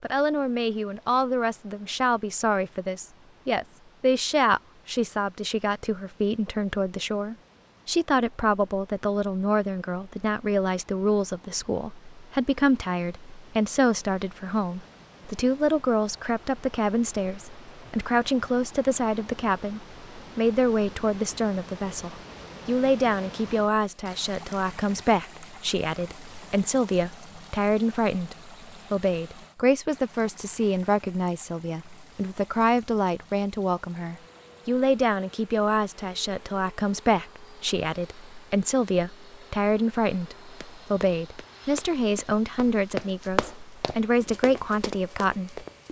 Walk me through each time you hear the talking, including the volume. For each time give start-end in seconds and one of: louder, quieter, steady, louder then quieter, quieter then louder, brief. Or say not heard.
0.0-45.6 steady.